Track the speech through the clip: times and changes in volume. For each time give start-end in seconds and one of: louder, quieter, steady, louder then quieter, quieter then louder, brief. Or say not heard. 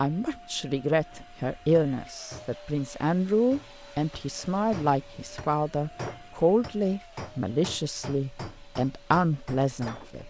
0.0-10.2 steady.